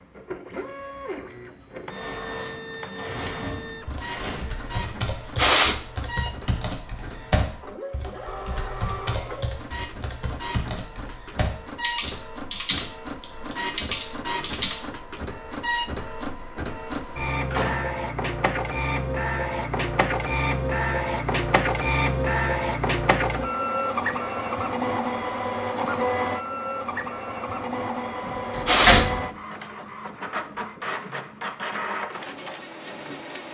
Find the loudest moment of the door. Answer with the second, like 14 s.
29 s.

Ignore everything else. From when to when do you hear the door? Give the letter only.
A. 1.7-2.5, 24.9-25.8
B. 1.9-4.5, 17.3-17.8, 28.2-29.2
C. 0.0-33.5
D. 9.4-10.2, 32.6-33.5
B.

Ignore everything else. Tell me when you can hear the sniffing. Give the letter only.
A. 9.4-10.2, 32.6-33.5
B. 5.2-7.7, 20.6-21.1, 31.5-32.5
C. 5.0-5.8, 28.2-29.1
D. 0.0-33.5
C.